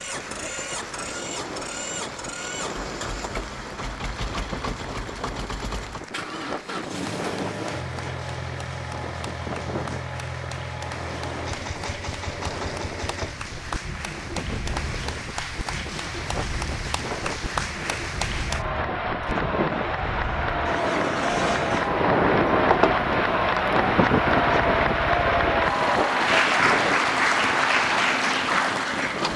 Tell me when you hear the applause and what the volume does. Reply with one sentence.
You can hear the applause from 0.0 to 29.3 s, getting louder.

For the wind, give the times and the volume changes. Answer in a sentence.
You can hear the wind from 0.0 to 29.3 s, getting louder.